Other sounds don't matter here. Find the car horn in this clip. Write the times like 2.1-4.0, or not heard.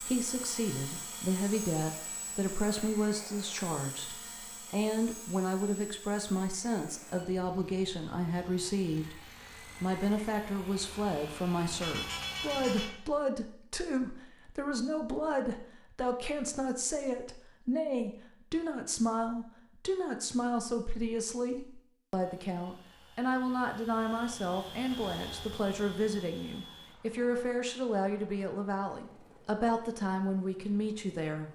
11.8-12.9.